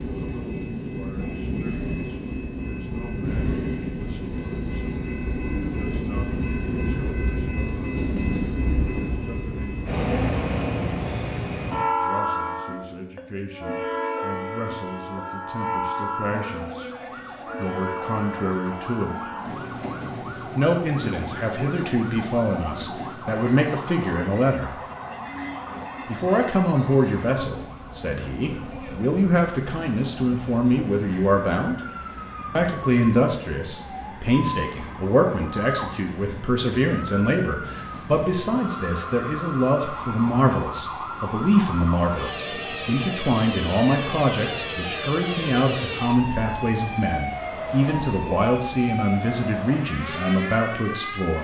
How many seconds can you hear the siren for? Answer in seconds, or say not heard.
35 s.